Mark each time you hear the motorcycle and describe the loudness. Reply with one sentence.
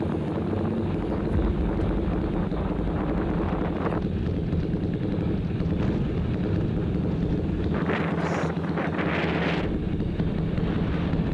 You can hear the motorcycle from 0.0 to 11.3 s, at a steady volume.